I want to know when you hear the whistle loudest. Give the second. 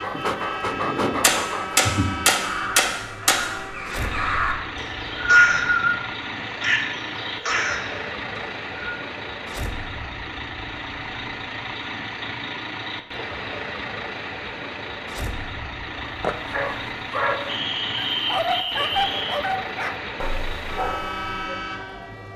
5 s.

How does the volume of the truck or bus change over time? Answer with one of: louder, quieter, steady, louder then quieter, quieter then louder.
steady.